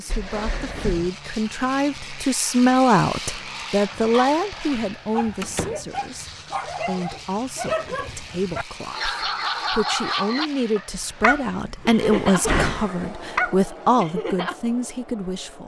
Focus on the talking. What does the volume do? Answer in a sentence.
The volume of the talking goes down, then up.